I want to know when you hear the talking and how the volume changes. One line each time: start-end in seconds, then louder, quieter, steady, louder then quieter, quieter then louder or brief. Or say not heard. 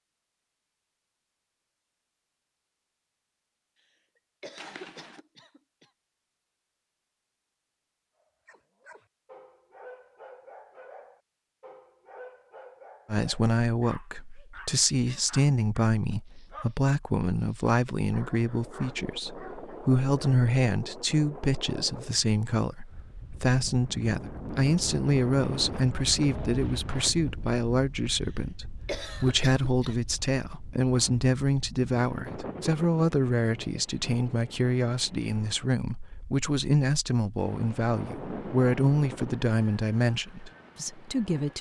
13.1-41.5 steady.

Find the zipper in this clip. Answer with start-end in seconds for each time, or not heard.
4.5-5.2.